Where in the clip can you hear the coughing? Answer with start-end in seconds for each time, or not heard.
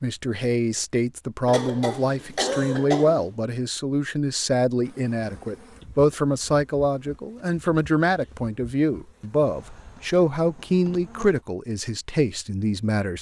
1.4-3.3.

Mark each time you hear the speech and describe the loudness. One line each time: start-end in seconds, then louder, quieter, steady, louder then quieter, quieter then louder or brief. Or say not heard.
0.0-13.1 steady.